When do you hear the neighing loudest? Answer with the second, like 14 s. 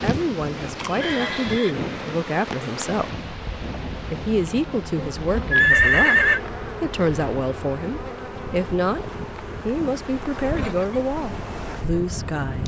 6 s.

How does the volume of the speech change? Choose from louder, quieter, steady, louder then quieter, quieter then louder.
steady.